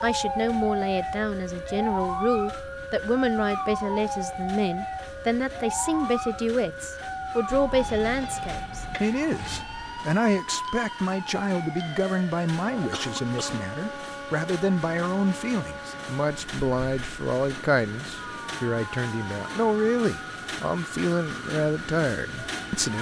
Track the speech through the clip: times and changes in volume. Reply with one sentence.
You can hear the speech from 0.0 to 22.9 s, at a steady volume.